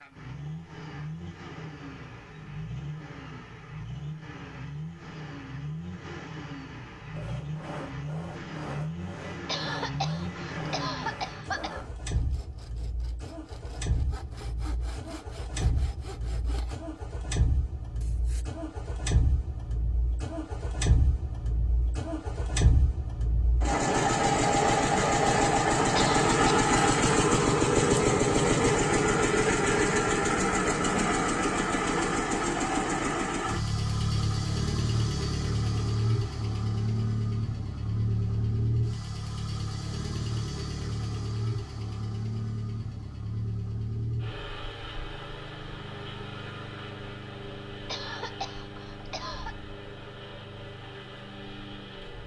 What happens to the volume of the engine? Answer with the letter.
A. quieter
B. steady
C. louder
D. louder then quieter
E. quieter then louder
D.